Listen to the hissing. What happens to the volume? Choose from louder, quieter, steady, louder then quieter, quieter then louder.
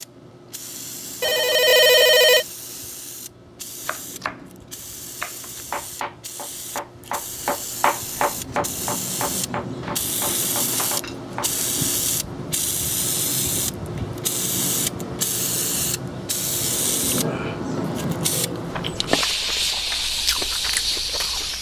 louder.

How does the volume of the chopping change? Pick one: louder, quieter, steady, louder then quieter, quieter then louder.
louder then quieter.